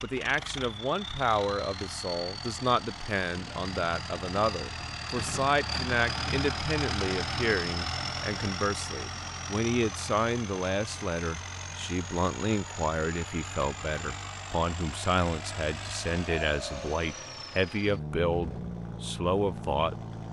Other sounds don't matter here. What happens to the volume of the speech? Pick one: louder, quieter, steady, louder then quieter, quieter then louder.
steady.